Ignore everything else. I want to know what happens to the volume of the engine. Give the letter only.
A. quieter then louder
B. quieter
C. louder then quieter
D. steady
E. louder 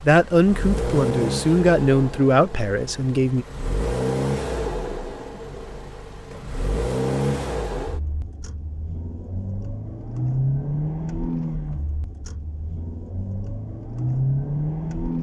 D.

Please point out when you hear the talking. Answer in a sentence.
The talking can be heard from 0.0 to 3.5 s.